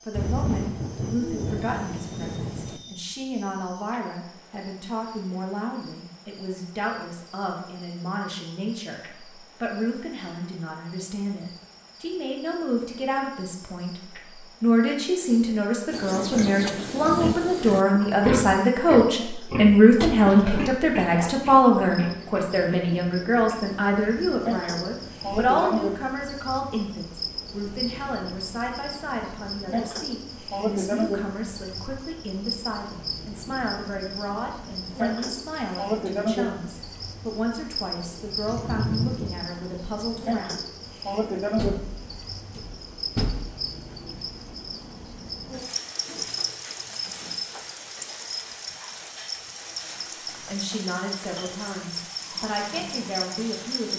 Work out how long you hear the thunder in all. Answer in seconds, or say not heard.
4 s.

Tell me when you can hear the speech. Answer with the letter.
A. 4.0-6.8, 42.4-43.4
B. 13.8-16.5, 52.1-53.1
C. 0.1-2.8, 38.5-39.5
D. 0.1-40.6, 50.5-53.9
D.